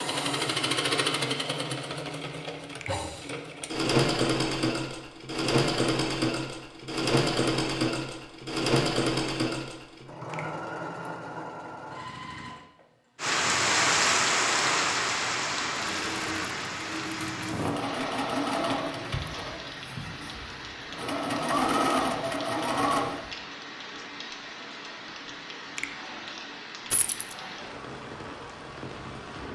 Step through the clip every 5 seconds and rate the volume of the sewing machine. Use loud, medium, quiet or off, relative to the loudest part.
loud, loud, medium, medium, loud, off.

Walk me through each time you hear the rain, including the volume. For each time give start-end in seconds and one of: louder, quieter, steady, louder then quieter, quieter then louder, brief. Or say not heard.
13.2-29.5 quieter.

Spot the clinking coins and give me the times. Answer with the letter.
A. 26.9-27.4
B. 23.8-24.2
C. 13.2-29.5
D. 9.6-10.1
A.